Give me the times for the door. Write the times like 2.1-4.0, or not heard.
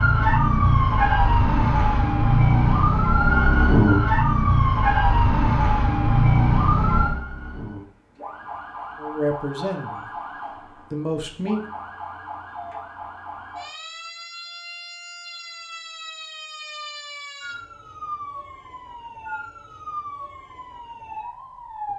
not heard.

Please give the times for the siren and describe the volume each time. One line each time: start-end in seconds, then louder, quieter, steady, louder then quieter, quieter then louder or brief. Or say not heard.
0.0-21.9 quieter.